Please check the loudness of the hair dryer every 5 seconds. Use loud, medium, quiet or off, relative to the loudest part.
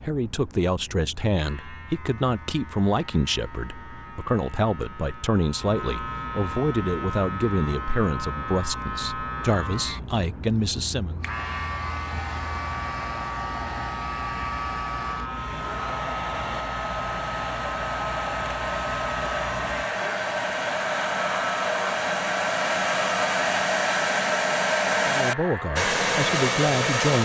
off, off, medium, medium, loud, loud.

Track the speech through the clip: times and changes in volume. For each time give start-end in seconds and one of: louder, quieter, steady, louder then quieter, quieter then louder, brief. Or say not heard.
0.0-11.2 steady
25.1-27.2 brief.